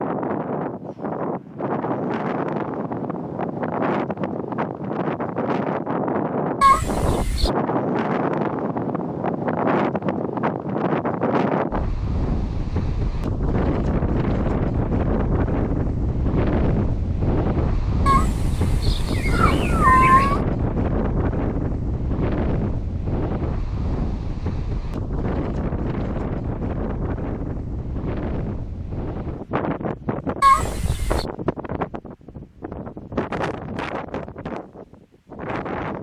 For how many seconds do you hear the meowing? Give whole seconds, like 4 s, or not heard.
4 s.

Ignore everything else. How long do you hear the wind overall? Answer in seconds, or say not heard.
36 s.